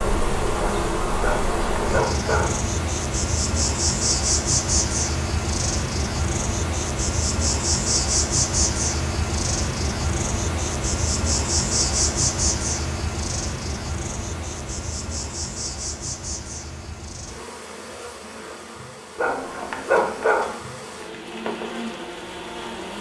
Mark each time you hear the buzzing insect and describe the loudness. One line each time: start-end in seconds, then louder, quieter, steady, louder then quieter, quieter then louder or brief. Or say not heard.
0.0-22.9 quieter.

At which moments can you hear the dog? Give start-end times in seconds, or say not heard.
1.2-2.6, 19.1-20.6.